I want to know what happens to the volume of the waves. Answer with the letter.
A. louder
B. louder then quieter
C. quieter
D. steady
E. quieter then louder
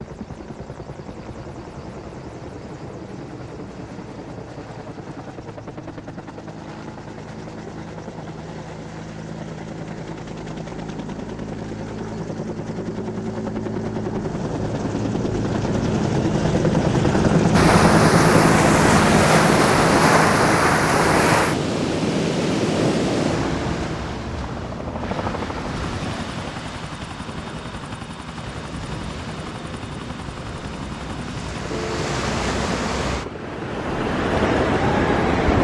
E.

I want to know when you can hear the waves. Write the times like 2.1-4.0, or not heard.
17.5-35.5.